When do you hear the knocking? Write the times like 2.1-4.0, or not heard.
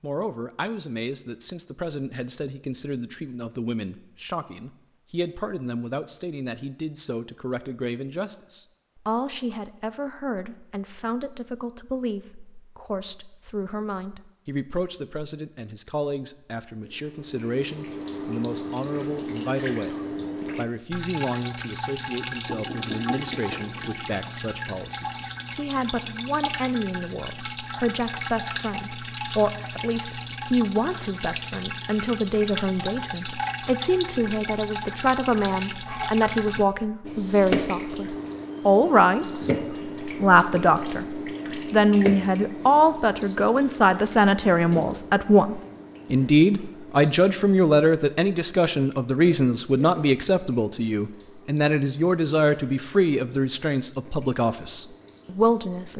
22.4-24.1.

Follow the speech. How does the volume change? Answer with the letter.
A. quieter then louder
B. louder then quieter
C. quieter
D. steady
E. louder
E.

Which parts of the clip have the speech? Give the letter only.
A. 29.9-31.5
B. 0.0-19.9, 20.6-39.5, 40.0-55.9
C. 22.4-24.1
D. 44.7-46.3
B.